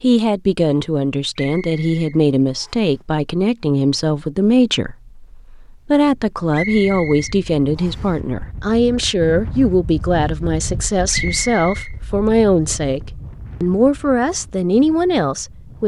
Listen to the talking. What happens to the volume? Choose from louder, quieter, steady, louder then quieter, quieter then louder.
steady.